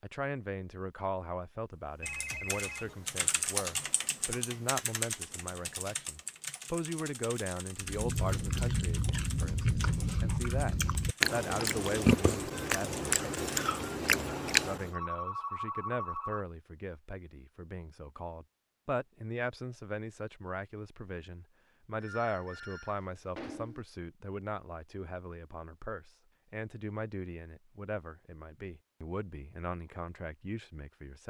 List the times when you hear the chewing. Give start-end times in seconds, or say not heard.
7.8-14.9.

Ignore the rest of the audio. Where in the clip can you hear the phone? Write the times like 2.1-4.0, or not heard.
2.0-3.0, 14.9-16.4, 22.0-23.9.